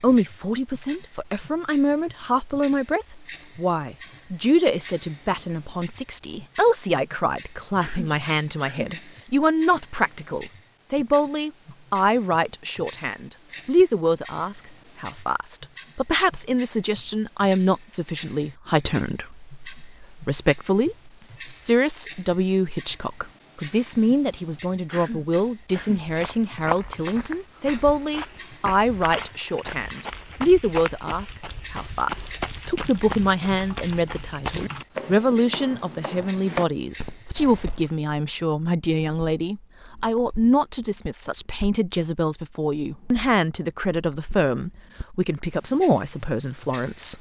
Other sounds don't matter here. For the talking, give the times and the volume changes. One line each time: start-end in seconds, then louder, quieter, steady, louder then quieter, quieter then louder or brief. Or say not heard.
0.0-47.1 steady.